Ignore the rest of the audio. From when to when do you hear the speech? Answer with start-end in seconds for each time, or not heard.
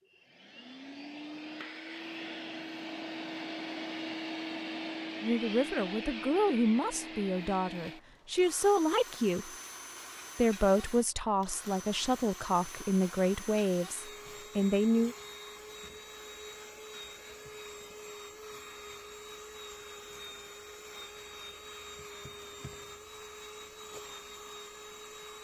5.2-9.5, 10.3-15.2.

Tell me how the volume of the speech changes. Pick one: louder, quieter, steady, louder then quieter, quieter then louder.
steady.